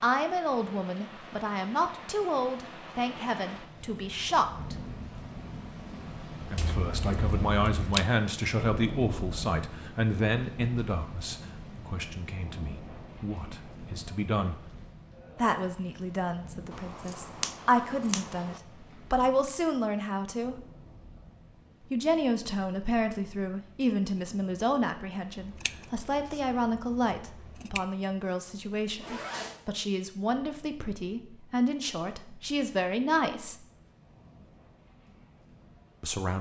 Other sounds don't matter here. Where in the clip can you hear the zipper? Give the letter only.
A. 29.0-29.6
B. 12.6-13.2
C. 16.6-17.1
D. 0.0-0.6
A.